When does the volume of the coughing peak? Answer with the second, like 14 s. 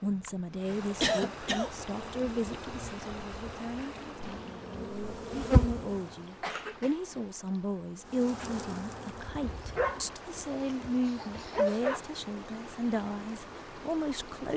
1 s.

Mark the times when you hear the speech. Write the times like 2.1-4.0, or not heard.
0.0-14.5.